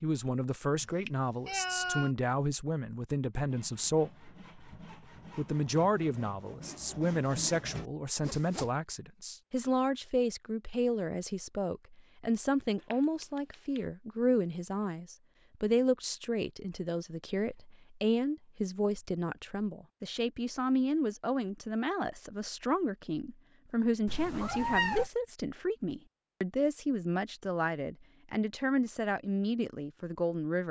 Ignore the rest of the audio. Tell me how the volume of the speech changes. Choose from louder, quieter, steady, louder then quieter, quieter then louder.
steady.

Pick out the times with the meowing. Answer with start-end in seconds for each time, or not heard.
0.8-2.1, 12.9-13.8, 24.1-25.1.